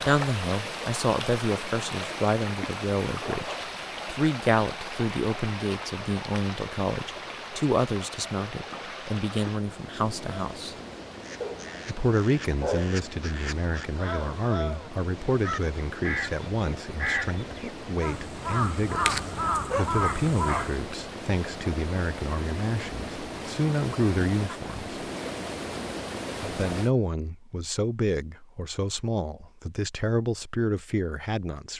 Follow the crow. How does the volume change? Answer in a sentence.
The loudness of the crow goes up.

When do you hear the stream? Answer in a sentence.
The stream can be heard from 0.0 to 26.9 s.